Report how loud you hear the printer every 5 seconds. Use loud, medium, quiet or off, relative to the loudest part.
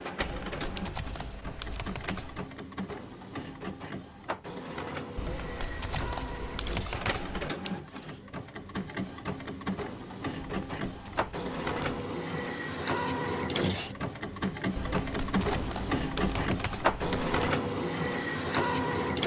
medium, medium, loud, loud.